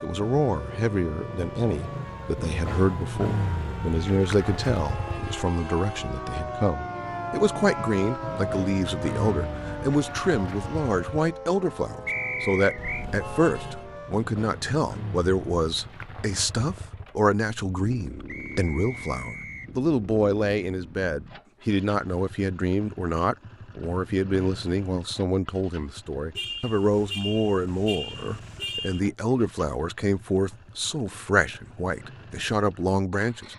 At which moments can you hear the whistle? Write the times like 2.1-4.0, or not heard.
12.1-13.1, 18.2-19.7.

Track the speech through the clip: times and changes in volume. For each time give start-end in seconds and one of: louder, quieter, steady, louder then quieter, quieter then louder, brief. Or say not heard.
0.0-33.5 steady.